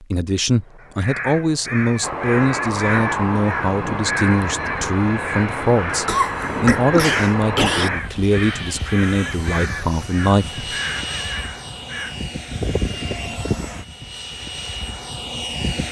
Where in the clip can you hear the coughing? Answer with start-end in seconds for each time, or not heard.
5.9-7.9.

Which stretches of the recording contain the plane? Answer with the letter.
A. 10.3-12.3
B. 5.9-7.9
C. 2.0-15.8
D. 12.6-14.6
C.